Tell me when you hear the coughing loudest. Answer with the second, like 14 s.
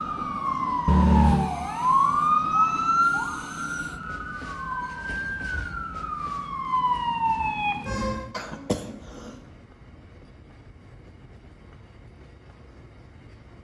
1 s.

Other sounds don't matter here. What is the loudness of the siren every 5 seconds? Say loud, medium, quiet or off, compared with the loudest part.
loud, loud, off.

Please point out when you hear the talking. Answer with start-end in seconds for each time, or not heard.
not heard.